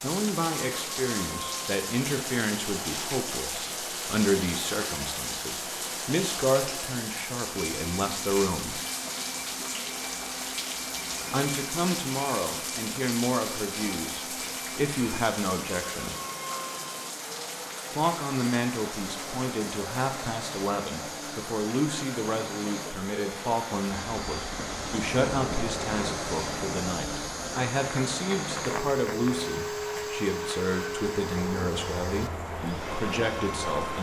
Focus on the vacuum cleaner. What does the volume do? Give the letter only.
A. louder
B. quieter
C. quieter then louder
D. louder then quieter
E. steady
A.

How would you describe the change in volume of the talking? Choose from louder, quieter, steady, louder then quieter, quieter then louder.
steady.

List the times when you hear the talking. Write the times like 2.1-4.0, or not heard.
0.0-8.8, 11.3-16.1, 17.9-33.9.